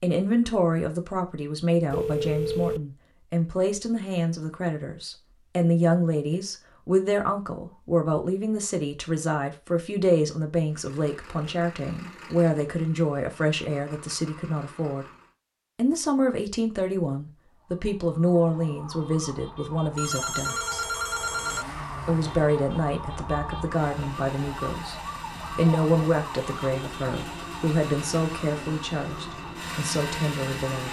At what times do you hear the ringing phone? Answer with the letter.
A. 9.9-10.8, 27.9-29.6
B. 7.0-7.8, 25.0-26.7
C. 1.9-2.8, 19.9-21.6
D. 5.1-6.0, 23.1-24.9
C.